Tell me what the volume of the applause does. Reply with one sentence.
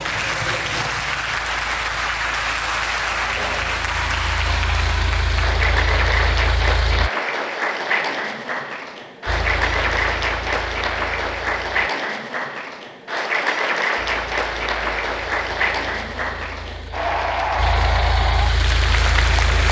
The volume of the applause stays about the same.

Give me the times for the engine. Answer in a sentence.
You can hear the engine from 0.0 to 7.1 s, from 9.2 to 11.9 s and from 13.9 to 19.6 s.